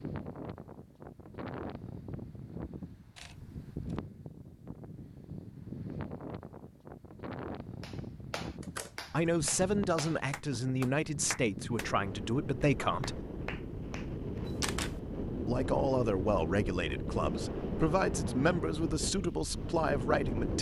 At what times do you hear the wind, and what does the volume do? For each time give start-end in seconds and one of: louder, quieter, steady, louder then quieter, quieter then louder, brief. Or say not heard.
0.0-20.5 louder.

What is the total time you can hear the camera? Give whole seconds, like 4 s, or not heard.
2 s.